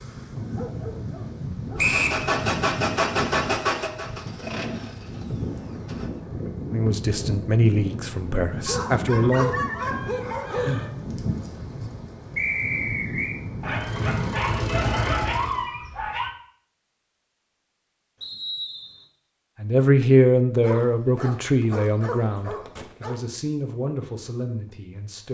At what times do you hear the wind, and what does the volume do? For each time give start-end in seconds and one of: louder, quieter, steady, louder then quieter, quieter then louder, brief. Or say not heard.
0.0-14.8 steady.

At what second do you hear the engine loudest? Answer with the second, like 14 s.
3 s.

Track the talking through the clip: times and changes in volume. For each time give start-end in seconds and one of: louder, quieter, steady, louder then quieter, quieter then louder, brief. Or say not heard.
6.7-9.6 brief
19.6-25.2 quieter.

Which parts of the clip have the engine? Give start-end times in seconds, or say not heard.
1.8-6.1, 13.7-15.7.